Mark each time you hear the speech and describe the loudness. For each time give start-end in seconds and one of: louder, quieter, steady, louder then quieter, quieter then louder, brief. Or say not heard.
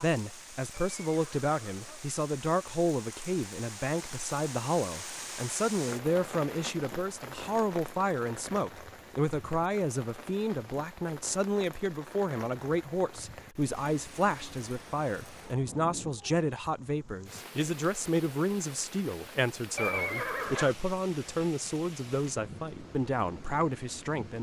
0.0-24.3 steady.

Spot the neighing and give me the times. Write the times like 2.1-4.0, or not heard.
0.7-2.0, 19.8-20.8.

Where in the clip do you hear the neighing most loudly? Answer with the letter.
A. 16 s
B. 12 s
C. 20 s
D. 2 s
C.